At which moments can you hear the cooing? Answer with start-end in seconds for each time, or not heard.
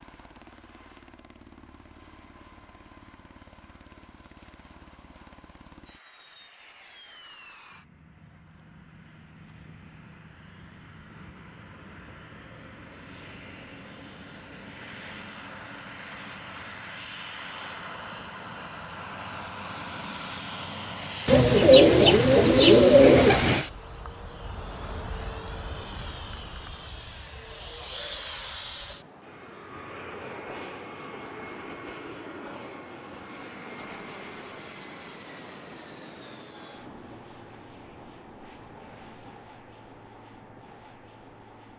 21.2-23.6.